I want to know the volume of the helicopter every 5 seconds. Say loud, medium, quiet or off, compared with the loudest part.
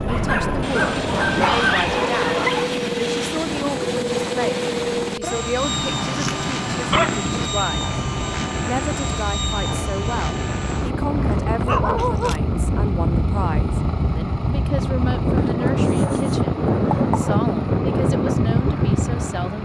loud, loud, medium, medium.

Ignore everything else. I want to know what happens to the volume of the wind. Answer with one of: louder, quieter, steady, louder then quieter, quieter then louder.
louder.